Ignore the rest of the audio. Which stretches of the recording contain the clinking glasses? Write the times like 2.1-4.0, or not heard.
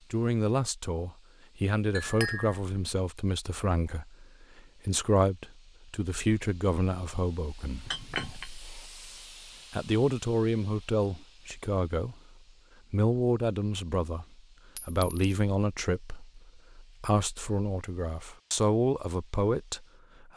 1.9-2.6, 7.8-8.5, 14.8-15.4.